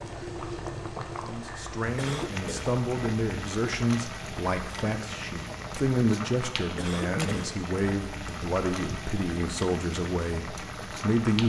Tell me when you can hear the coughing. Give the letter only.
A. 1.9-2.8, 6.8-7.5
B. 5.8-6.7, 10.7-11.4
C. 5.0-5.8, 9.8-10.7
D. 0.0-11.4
A.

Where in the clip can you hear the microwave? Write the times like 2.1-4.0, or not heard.
not heard.